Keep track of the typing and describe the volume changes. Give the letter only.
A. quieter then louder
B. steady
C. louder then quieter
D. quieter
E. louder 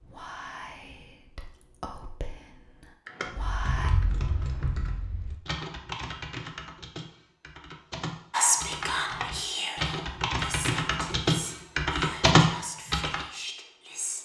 E.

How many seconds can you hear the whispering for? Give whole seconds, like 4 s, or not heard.
10 s.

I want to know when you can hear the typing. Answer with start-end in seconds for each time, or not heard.
3.0-13.2.